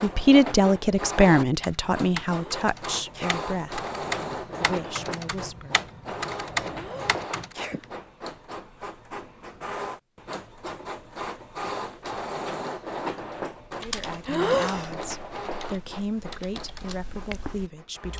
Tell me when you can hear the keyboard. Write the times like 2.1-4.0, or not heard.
1.5-7.5, 13.8-18.1.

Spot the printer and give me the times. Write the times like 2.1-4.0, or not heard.
0.0-18.1.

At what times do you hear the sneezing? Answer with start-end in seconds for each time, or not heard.
2.2-3.4, 6.7-7.9, 14.2-14.9.